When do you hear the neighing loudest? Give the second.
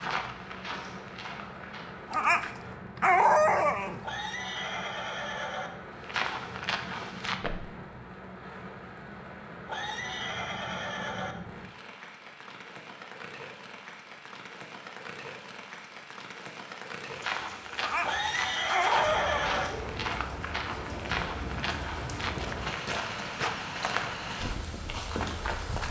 19 s.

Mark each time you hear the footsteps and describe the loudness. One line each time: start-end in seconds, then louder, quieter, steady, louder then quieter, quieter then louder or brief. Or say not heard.
0.0-2.0 brief
6.0-7.8 brief
17.1-25.8 steady.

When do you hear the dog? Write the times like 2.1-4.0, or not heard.
2.1-4.0, 17.8-19.5.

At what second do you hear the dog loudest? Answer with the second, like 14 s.
3 s.